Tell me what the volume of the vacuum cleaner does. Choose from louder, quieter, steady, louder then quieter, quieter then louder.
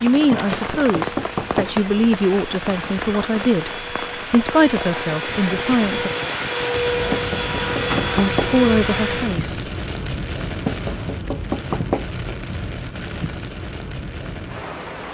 louder.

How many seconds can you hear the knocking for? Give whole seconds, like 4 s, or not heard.
4 s.